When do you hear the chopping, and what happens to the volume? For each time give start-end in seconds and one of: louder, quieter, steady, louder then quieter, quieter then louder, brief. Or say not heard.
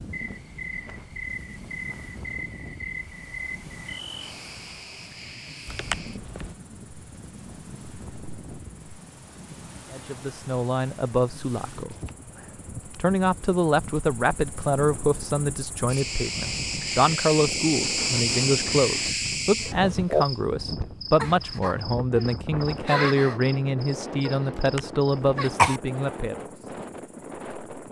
not heard.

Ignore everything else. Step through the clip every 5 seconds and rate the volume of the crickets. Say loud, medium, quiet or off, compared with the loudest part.
medium, quiet, quiet, loud, loud, quiet.